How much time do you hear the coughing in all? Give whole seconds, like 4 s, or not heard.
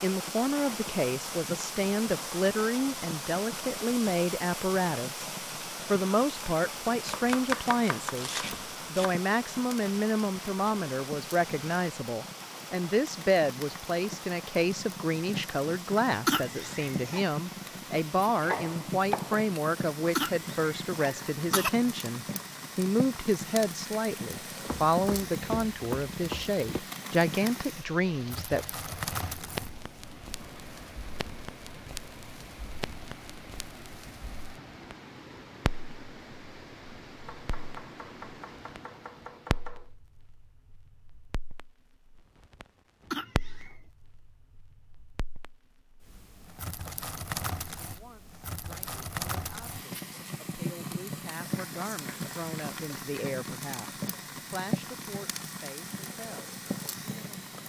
3 s.